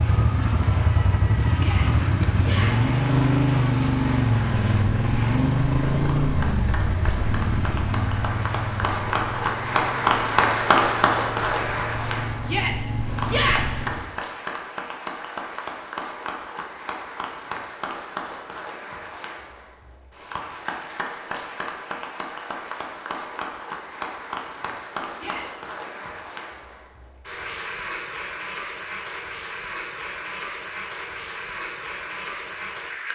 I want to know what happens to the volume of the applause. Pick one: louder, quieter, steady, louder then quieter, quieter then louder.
louder then quieter.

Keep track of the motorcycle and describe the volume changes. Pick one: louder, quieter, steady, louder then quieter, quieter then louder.
quieter.